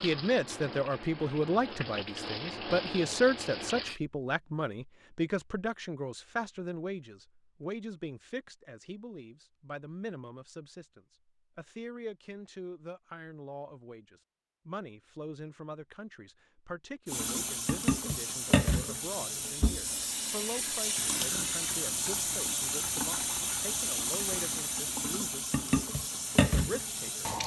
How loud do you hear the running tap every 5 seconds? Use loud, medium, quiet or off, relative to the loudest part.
medium, off, off, loud, loud, loud.